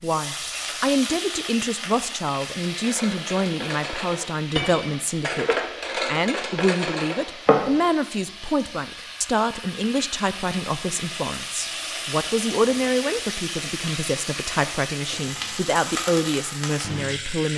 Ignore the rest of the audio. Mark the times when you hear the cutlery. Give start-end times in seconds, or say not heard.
2.6-7.7.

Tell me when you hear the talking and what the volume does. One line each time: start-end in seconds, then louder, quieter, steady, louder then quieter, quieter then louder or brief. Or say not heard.
0.0-17.5 steady.